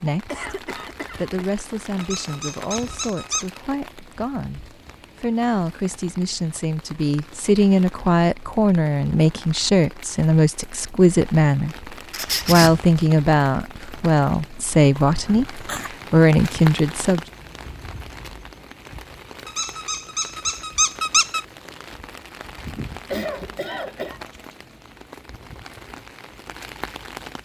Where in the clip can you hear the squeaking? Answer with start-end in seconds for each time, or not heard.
2.0-3.6, 12.1-12.8, 19.4-21.4.